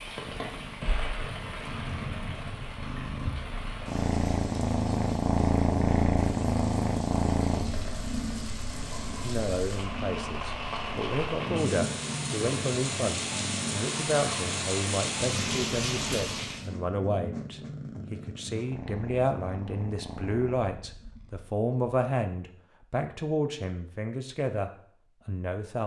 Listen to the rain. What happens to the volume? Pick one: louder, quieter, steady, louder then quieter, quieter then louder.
quieter then louder.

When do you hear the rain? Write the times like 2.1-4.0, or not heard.
0.0-16.7.